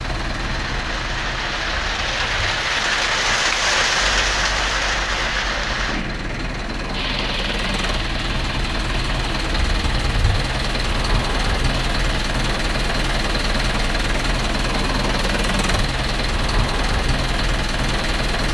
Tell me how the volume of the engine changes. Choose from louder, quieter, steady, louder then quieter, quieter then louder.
louder.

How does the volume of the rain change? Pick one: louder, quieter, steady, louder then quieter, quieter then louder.
quieter.